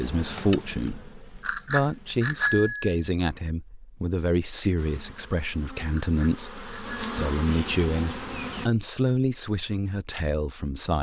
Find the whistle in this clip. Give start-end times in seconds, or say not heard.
not heard.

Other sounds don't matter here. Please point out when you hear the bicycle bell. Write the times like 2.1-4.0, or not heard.
1.4-3.0, 5.9-7.2.